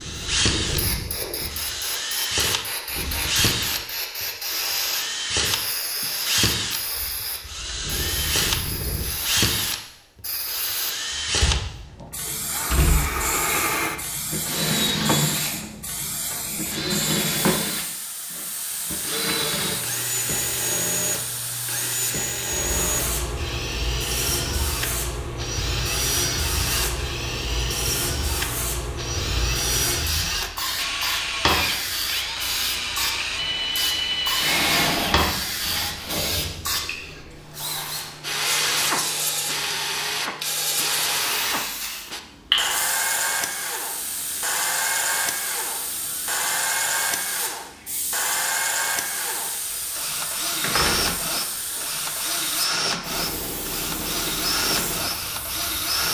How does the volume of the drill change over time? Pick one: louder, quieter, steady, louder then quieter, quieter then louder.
steady.